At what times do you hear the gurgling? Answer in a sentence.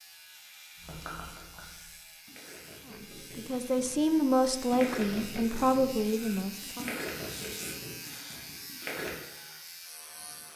The gurgling can be heard from 0.8 to 9.2 s.